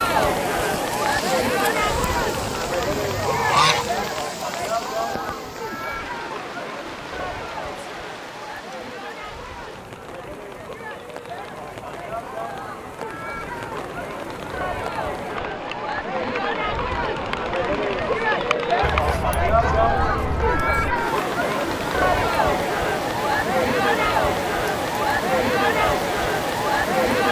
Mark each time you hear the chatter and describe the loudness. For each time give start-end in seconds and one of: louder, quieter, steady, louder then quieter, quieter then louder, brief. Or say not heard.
0.0-27.2 quieter then louder.